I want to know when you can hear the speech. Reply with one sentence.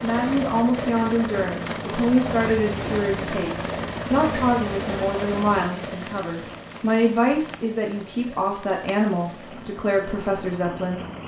You can hear the speech from 0.0 to 11.2 s.